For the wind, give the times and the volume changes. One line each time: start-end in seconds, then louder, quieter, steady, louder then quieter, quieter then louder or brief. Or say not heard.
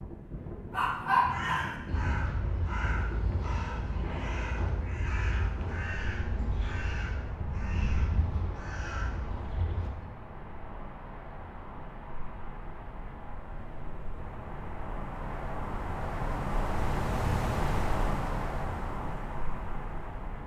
0.0-20.4 louder.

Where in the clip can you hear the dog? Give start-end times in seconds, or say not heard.
0.7-1.8.